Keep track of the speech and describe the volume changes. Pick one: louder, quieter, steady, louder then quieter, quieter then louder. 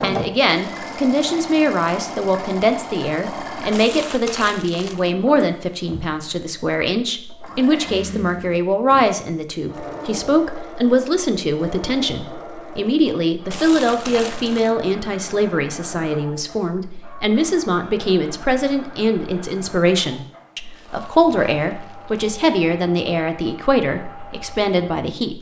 steady.